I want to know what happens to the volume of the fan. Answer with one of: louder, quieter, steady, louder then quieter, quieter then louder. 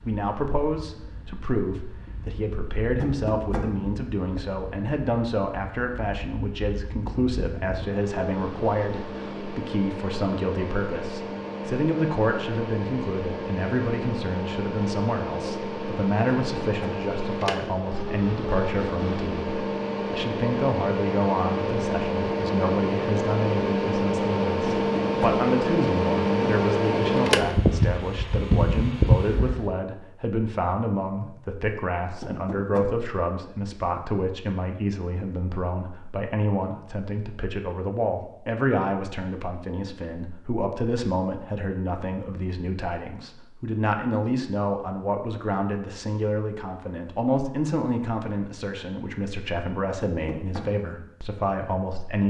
louder.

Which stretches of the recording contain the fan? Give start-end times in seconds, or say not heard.
0.0-29.8.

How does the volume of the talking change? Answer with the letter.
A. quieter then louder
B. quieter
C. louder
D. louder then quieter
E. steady
E.